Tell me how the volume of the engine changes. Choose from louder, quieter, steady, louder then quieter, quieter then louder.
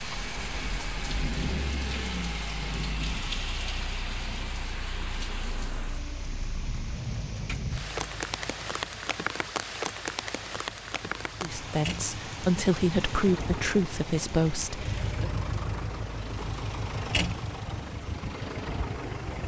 quieter then louder.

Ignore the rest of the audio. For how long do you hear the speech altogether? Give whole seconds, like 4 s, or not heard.
4 s.